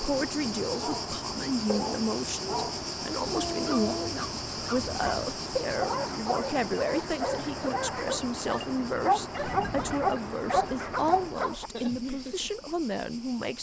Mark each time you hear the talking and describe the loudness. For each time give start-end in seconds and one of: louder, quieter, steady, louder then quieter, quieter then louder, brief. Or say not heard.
0.0-13.5 steady.